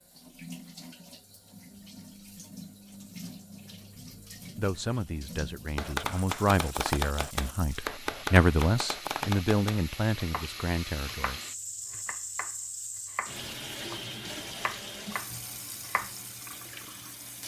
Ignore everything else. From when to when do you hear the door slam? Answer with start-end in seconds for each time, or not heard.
not heard.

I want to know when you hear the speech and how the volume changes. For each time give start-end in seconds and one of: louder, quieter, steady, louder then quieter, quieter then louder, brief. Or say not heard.
4.5-11.4 louder then quieter.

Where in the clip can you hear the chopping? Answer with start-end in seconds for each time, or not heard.
5.8-16.1.